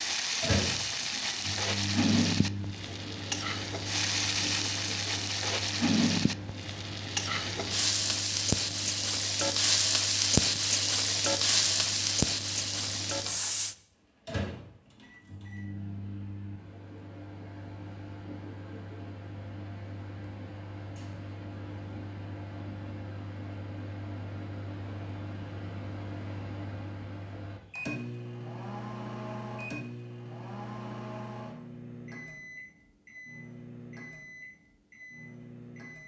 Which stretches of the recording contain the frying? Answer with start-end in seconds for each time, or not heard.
0.0-13.8.